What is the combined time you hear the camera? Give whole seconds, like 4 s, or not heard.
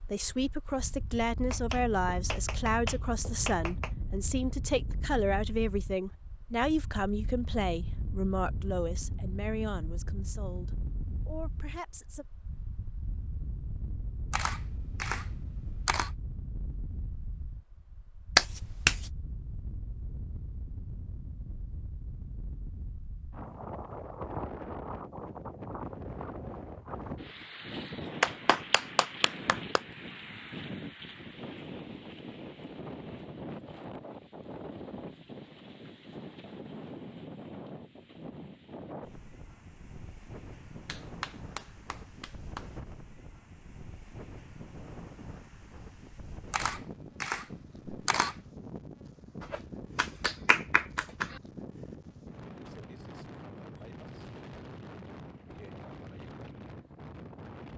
4 s.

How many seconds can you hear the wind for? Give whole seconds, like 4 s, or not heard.
58 s.